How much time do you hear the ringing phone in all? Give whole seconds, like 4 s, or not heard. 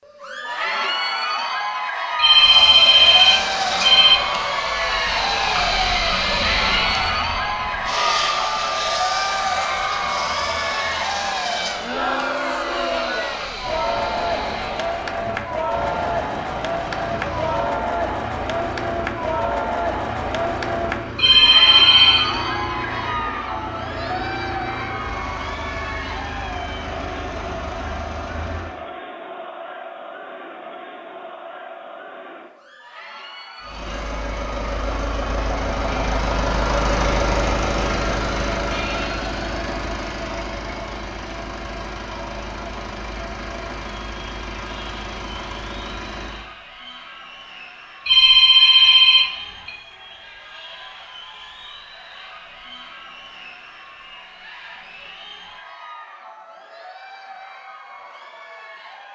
5 s.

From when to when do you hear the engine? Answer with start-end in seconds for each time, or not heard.
2.2-28.8, 33.6-46.5.